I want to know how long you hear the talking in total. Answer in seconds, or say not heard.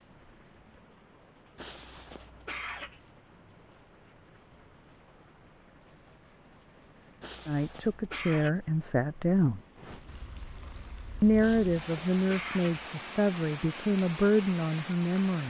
6 s.